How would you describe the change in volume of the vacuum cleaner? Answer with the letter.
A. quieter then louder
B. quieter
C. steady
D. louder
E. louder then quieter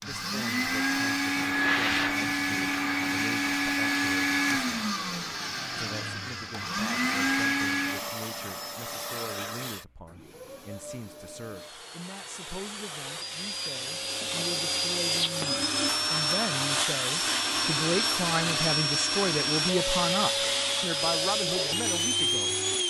A.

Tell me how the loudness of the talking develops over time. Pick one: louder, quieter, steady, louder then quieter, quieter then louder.
louder.